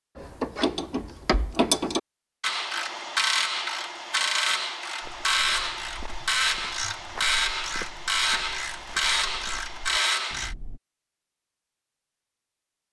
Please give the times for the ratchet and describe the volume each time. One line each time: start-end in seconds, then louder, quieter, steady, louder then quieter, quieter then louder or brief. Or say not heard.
0.1-10.6 steady.